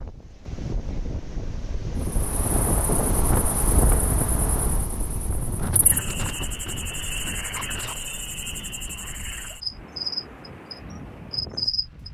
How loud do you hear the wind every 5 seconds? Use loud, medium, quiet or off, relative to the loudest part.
loud, medium, quiet.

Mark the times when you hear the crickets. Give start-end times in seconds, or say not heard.
2.0-12.0.